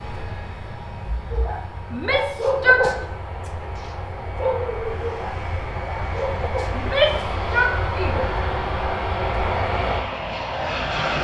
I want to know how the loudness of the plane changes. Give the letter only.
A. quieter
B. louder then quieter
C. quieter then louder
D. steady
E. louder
E.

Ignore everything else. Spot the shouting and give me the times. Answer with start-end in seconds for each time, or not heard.
1.9-2.9, 6.8-8.2.